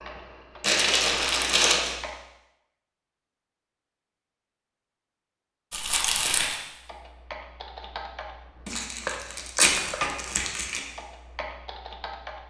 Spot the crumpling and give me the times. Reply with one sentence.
The crumpling can be heard from 0.6 to 1.9 s, from 5.7 to 6.6 s and from 8.7 to 10.8 s.